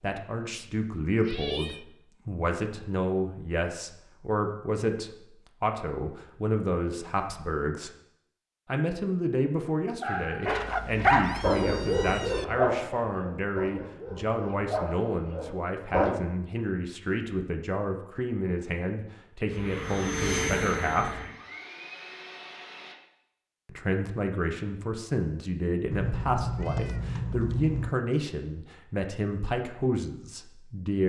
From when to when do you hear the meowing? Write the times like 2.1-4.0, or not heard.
0.5-1.9, 10.4-12.4, 25.9-27.9.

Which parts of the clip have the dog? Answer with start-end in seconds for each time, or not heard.
10.0-16.1.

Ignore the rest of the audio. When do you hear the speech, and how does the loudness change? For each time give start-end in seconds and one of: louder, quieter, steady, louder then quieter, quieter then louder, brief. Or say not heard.
0.0-7.9 steady
8.7-21.2 steady
23.6-31.0 steady.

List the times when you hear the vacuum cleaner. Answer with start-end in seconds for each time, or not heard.
19.4-22.9.